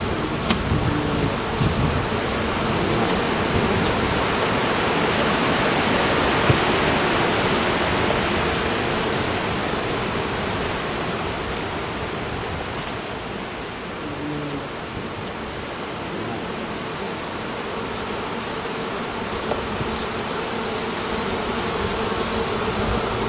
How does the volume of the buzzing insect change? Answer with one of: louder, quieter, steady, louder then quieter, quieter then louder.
quieter then louder.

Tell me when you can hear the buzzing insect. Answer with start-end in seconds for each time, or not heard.
0.0-23.2.